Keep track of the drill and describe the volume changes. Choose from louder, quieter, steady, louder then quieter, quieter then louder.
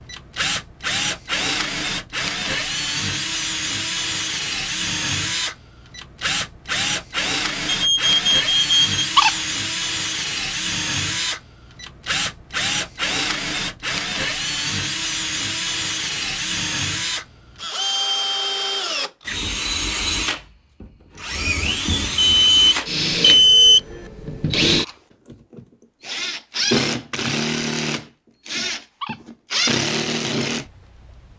steady.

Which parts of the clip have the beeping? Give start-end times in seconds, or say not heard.
7.7-9.1, 22.2-23.8.